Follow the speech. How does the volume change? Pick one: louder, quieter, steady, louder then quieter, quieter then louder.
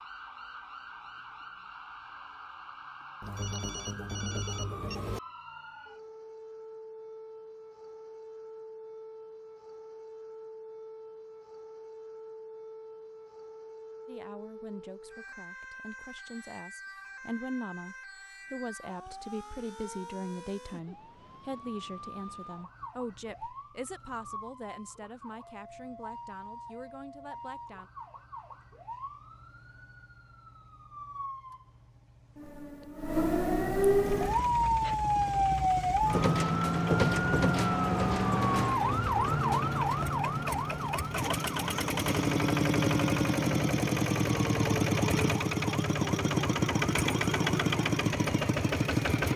louder then quieter.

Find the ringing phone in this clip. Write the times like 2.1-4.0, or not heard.
3.2-5.2.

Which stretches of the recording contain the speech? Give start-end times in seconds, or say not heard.
14.1-27.9.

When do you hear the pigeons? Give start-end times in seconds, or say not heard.
not heard.